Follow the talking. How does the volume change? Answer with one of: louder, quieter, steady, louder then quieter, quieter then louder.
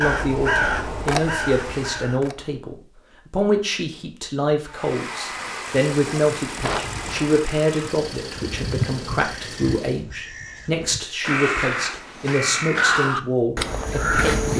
steady.